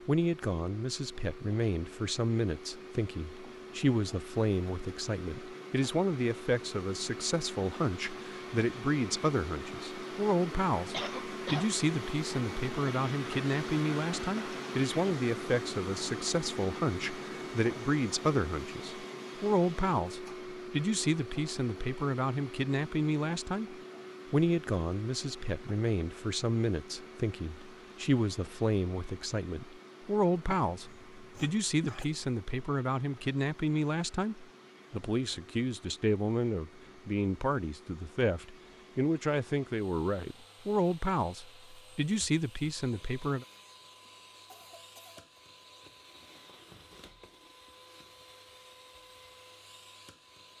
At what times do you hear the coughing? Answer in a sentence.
The coughing can be heard from 10.9 to 11.8 s, from 30.6 to 32.0 s and from 44.0 to 45.4 s.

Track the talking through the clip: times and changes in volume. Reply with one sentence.
You can hear the talking from 0.1 to 43.5 s, at a steady volume.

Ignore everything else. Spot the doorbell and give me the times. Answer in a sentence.
The doorbell can't be heard in this clip.